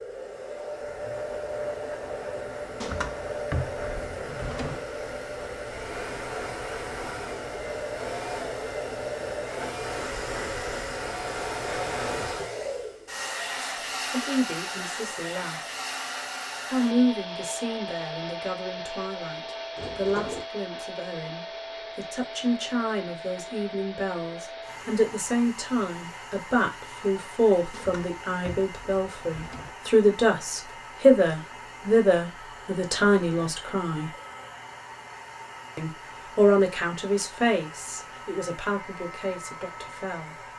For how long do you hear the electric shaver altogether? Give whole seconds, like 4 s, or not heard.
not heard.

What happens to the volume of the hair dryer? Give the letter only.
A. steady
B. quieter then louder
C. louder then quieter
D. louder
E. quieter
E.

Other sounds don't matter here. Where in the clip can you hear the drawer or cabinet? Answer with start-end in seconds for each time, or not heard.
2.8-4.8, 19.8-20.4, 27.7-29.8.